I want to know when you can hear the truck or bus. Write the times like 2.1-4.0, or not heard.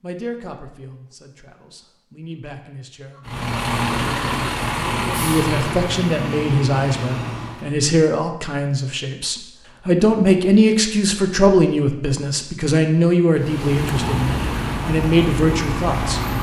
3.1-7.8, 13.3-16.3.